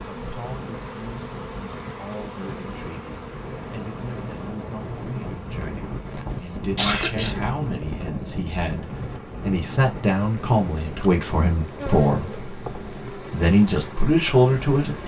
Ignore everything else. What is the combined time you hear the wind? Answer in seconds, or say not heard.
15 s.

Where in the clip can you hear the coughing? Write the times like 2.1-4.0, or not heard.
5.5-7.4.